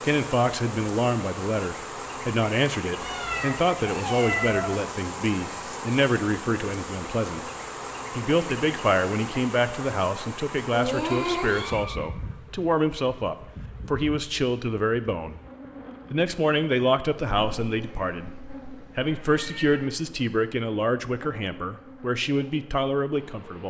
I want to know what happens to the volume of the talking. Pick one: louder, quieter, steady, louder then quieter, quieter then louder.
steady.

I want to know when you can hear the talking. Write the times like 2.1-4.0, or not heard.
0.0-7.5, 8.1-15.4, 16.1-23.6.